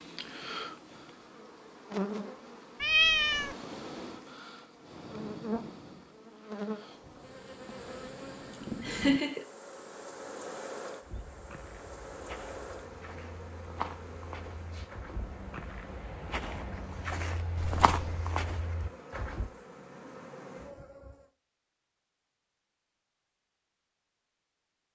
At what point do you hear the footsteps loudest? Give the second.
18 s.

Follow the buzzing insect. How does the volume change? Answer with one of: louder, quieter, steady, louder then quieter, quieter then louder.
quieter.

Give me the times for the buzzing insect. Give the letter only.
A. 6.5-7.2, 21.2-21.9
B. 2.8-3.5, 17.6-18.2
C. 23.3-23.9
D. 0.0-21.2
D.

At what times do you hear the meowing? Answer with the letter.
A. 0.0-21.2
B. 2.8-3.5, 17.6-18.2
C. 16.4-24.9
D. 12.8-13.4
B.